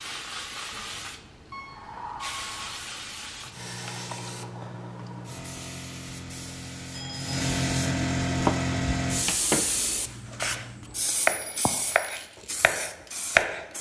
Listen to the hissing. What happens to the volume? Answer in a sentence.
The volume of the hissing goes up, then down.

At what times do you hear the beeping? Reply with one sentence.
The beeping can be heard from 1.5 to 2.8 s, from 6.9 to 7.4 s and from 11.2 to 12.1 s.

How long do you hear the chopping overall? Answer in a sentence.
The chopping can be heard for 5 seconds in total.